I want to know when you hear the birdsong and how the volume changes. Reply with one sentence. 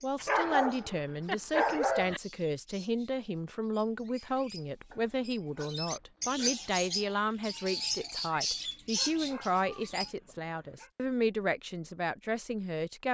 You can hear the birdsong from 0.0 to 10.1 s, getting louder.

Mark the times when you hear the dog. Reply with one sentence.
You can hear the dog from 0.1 to 2.2 s, from 4.9 to 6.7 s and from 8.9 to 10.9 s.